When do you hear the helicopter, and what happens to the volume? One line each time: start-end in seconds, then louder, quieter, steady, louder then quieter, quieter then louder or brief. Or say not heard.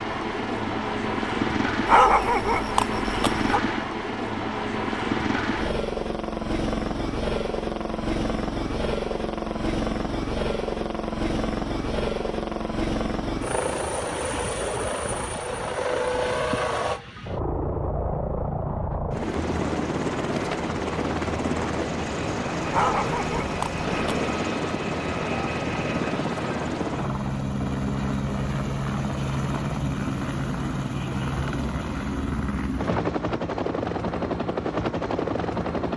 0.0-35.9 steady.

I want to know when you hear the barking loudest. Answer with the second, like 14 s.
2 s.